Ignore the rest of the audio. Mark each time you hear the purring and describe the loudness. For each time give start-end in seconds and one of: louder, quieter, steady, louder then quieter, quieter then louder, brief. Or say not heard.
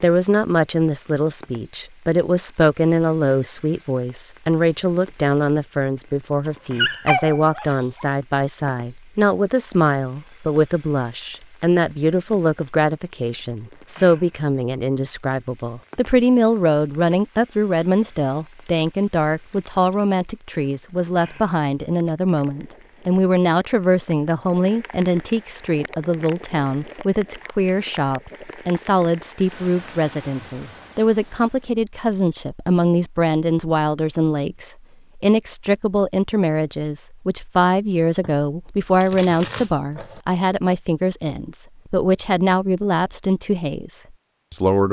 not heard.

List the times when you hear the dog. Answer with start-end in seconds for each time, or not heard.
6.8-8.1.